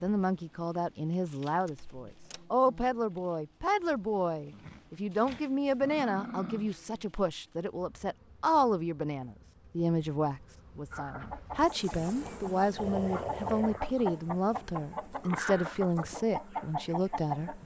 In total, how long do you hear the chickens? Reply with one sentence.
You can hear the chickens for 7 seconds altogether.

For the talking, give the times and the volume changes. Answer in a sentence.
You can hear the talking from 0.0 to 17.6 s, at a steady volume.